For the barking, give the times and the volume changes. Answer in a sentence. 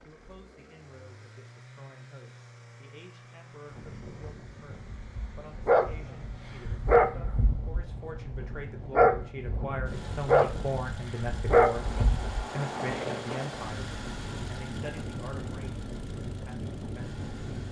The barking can be heard from 5.0 to 12.4 s, at a steady volume.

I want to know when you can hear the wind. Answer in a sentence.
You can hear the wind from 3.6 to 17.6 s.